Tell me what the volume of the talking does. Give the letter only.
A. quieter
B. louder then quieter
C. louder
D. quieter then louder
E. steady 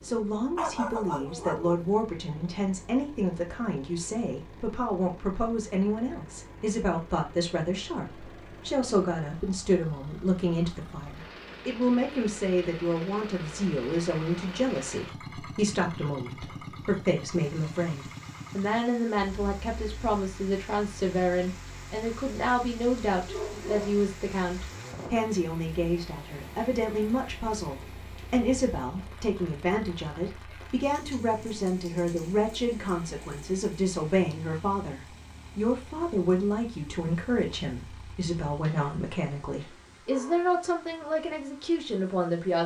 E.